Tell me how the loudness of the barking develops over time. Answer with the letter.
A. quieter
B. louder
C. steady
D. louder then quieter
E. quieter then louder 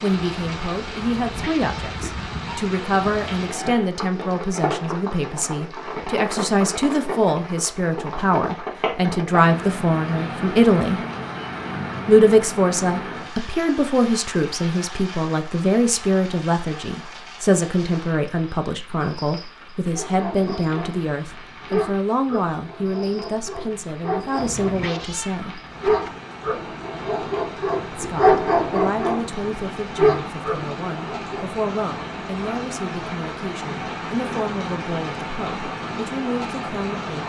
B.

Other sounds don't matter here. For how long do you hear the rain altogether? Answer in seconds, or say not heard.
37 s.